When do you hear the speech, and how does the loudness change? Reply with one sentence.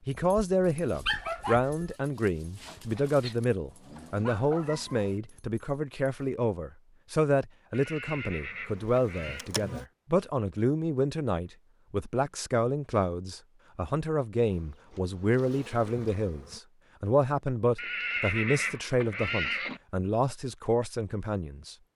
You can hear the speech from 0.1 to 21.8 s, at a steady volume.